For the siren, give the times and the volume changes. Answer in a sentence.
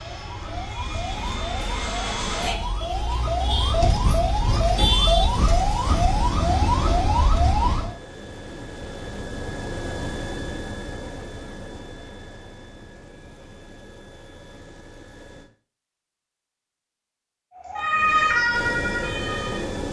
You can hear the siren from 0.0 to 8.0 s, getting louder; and briefly from 17.5 to 19.6 s.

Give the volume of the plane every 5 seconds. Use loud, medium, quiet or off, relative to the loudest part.
loud, loud, medium, loud.